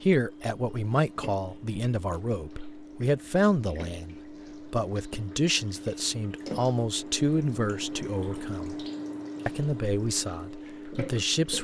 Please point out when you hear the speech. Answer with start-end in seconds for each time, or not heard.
0.0-8.8, 9.4-11.5.